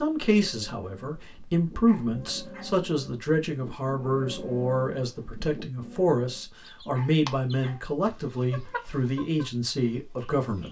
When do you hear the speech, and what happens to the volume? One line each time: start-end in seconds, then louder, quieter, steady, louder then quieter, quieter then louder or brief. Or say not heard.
0.0-10.6 steady.